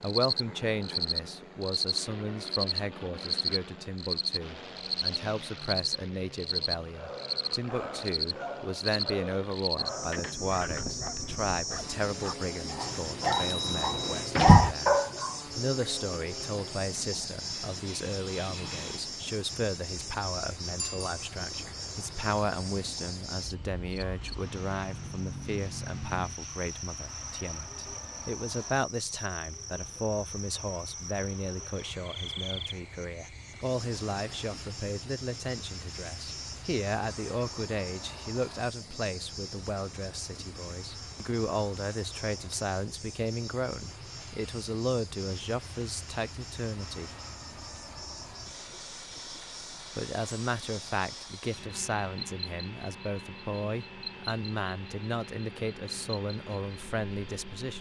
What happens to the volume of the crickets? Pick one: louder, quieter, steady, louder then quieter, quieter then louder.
quieter.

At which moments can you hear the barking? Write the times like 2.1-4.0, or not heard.
7.0-15.3.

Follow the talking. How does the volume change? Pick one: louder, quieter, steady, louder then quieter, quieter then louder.
steady.